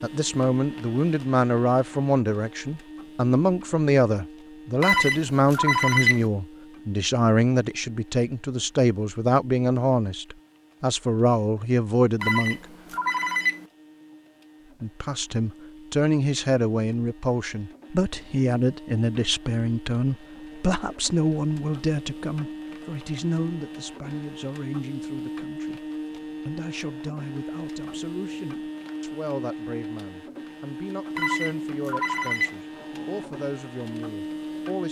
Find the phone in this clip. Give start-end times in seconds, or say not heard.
4.8-6.2, 12.2-13.6, 31.1-32.5.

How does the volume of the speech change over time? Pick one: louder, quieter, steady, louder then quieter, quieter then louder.
quieter.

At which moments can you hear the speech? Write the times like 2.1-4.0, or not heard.
0.0-12.6, 14.8-34.8.